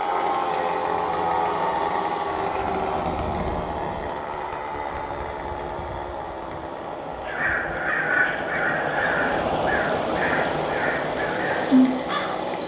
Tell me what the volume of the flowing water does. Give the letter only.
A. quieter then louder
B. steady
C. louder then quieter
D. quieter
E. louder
E.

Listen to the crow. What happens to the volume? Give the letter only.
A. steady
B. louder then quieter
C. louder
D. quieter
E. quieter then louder
D.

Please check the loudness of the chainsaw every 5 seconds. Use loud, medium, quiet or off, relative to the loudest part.
loud, medium, medium.